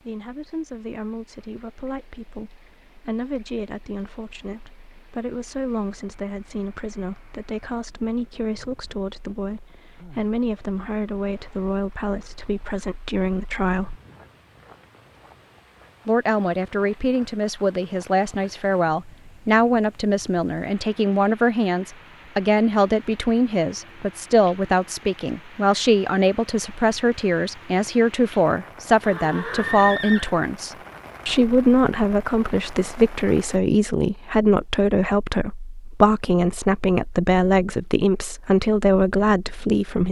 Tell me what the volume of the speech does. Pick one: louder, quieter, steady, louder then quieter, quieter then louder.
louder.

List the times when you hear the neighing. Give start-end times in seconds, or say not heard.
29.0-30.4.